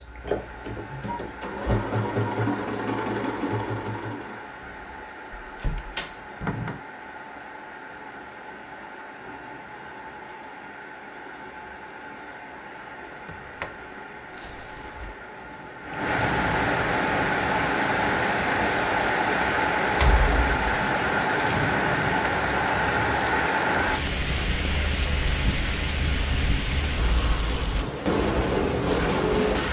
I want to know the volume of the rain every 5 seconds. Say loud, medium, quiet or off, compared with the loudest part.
quiet, quiet, quiet, loud, loud, loud.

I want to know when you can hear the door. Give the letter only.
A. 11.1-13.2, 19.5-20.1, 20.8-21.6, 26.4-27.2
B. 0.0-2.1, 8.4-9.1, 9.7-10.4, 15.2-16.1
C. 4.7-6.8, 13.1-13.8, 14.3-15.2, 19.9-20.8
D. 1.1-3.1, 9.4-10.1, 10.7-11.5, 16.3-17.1
C.